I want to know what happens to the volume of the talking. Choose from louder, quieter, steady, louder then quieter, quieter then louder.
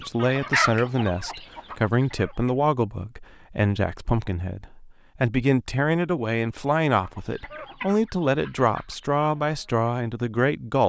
steady.